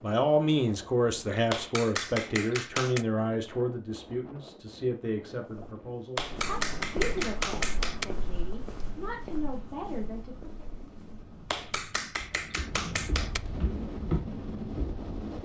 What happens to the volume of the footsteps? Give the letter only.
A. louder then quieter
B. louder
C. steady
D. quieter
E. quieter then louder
E.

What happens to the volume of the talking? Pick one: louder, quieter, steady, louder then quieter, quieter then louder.
quieter.